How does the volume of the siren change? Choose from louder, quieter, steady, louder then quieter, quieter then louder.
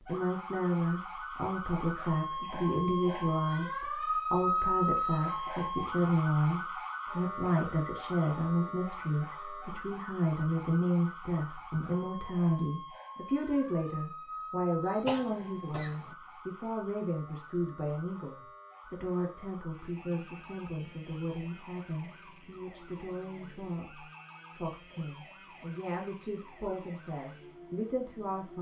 quieter.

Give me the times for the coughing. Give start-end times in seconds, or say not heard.
15.1-16.1.